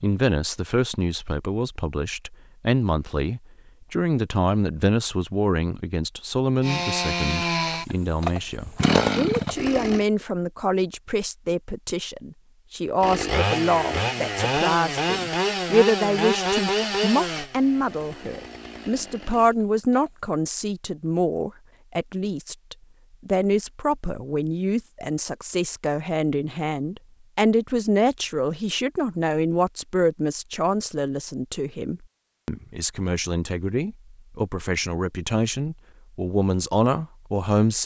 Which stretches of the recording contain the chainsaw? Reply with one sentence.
The chainsaw can be heard from 6.6 to 10.1 s and from 13.0 to 20.1 s.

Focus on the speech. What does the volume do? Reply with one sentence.
The loudness of the speech stays about the same.